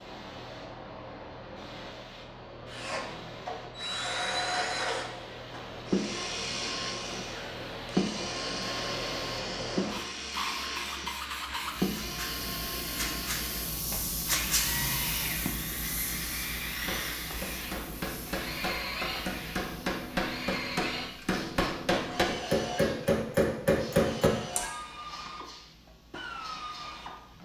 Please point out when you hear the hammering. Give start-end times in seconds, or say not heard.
16.8-24.7.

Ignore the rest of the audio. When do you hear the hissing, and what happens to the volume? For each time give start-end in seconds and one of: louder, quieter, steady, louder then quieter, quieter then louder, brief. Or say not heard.
0.0-27.4 louder then quieter.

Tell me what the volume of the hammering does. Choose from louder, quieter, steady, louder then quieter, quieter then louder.
louder.